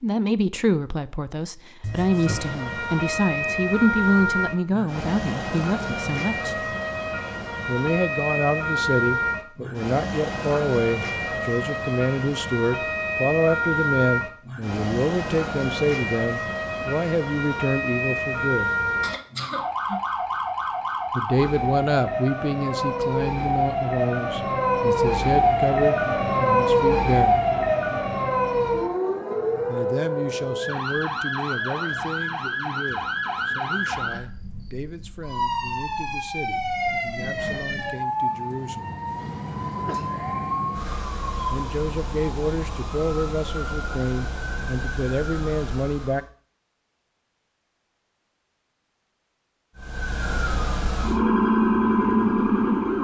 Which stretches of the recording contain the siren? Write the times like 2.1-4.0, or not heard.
1.8-46.3, 49.8-53.0.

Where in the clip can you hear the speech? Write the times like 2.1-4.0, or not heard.
0.0-6.8, 7.7-18.7, 21.1-27.4, 29.6-39.0, 41.5-46.2.